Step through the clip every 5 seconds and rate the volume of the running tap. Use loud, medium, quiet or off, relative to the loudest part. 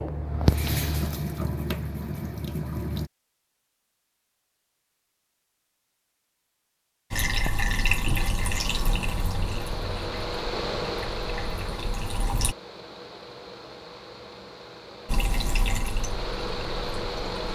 loud, loud, medium, medium.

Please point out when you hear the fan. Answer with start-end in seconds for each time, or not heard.
8.3-17.5.